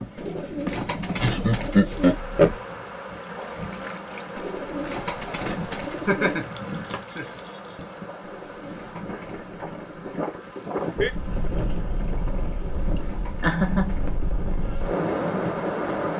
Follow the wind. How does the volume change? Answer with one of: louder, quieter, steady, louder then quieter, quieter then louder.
louder.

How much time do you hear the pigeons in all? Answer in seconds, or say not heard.
8 s.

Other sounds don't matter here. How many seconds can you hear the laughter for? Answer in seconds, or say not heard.
4 s.